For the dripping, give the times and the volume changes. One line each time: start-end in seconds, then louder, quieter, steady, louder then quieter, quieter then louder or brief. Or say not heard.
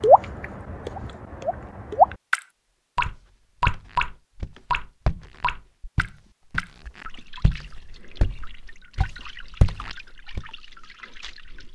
0.0-11.6 quieter.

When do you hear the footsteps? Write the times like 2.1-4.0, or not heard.
3.0-10.4.